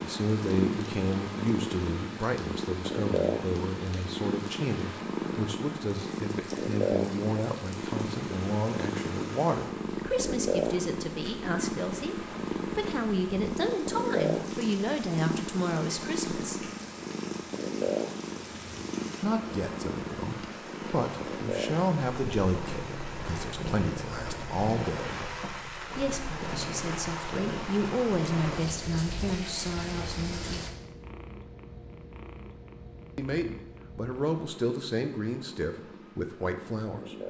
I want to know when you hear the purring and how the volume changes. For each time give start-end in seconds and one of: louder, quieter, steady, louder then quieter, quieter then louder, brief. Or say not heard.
0.0-37.2 quieter.